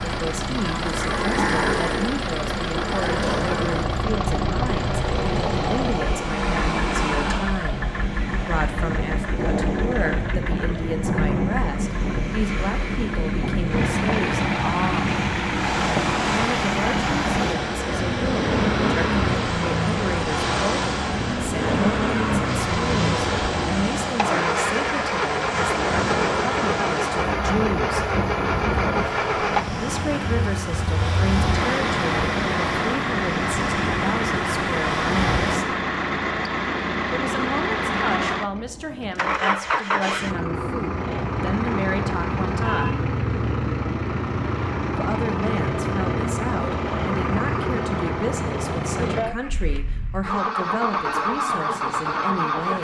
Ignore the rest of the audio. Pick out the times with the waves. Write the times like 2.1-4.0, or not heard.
0.0-35.6.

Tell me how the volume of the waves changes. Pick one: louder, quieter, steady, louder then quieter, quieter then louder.
steady.